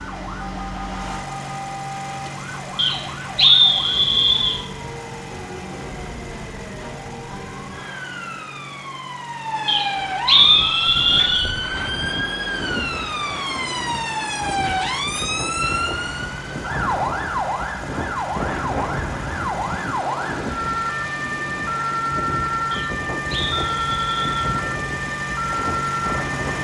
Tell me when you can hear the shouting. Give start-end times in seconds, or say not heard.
not heard.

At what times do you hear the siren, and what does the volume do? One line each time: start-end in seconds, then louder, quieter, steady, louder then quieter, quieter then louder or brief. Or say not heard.
0.0-26.5 louder.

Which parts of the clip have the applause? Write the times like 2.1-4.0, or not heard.
not heard.